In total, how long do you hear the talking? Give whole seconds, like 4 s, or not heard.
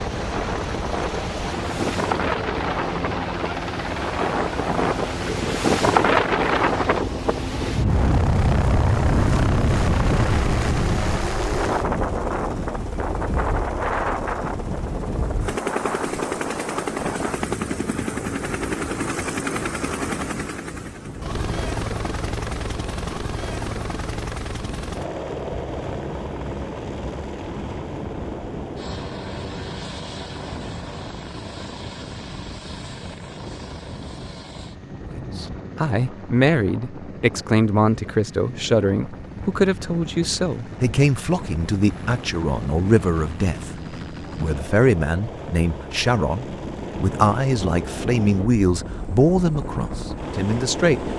16 s.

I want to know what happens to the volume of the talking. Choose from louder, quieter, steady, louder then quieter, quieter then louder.
steady.